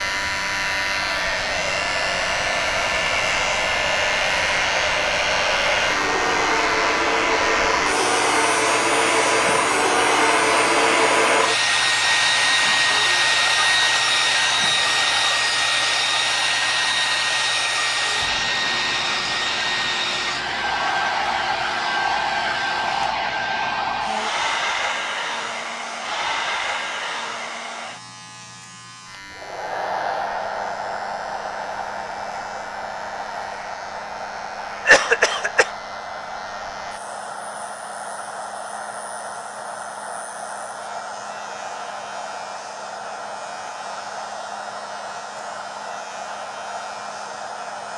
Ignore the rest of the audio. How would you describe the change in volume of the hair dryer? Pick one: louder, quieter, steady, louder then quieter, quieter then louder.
quieter.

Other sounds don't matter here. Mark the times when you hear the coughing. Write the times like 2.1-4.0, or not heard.
34.9-35.7.